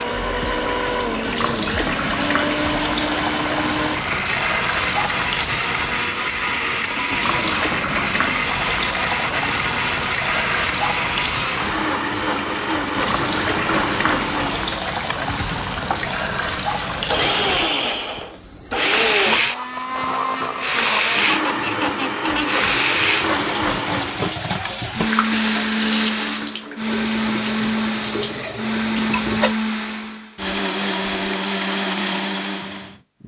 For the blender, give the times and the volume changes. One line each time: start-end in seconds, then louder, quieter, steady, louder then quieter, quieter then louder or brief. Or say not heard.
0.0-33.2 steady.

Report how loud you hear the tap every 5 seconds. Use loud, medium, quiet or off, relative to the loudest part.
loud, loud, loud, loud, loud, loud, off.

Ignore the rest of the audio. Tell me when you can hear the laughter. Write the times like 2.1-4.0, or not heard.
21.2-22.6.